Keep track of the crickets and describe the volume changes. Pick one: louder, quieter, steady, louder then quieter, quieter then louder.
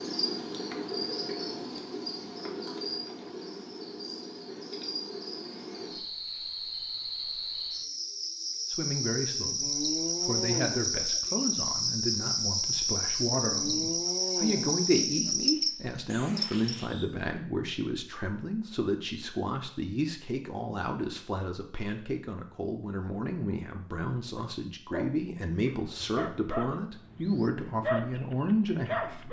louder.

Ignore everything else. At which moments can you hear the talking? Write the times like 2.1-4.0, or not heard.
8.7-29.2.